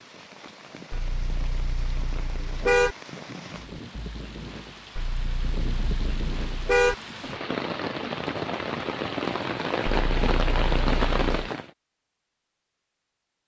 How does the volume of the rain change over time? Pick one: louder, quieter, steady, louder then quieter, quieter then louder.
louder.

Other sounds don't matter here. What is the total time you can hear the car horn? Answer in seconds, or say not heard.
5 s.